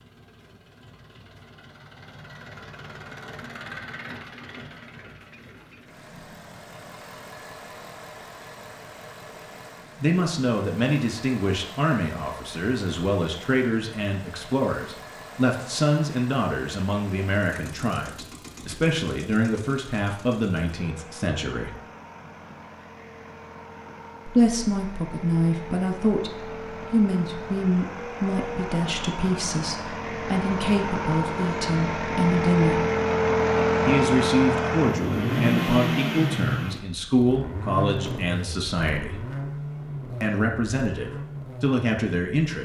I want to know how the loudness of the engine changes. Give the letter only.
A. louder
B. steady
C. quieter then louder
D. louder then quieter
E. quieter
A.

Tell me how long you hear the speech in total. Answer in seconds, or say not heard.
28 s.